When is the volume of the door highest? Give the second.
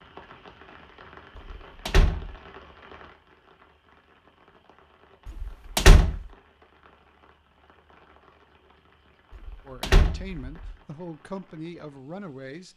6 s.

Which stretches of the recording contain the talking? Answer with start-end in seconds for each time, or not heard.
9.7-12.7.